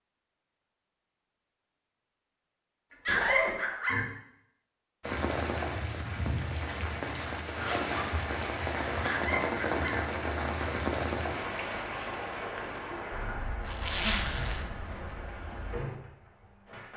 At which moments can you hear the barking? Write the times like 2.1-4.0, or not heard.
3.0-4.0, 9.0-10.0.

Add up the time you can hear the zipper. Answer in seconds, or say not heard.
2 s.